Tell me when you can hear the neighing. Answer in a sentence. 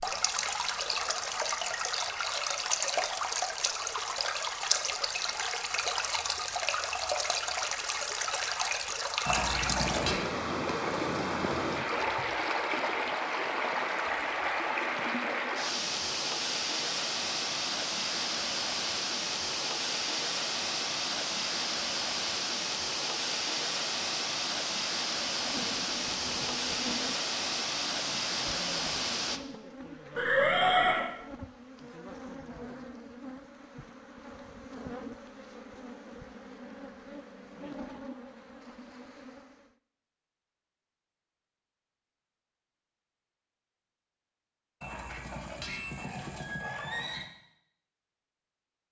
The neighing can be heard from 9.2 to 10.2 s, from 30.1 to 31.1 s and from 44.8 to 47.2 s.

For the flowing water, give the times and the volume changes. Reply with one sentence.
The flowing water can be heard from 0.0 to 29.4 s, at a steady volume.